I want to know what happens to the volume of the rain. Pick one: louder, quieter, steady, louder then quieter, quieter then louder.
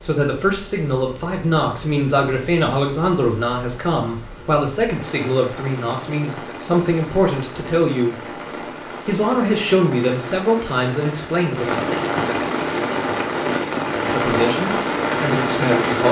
louder.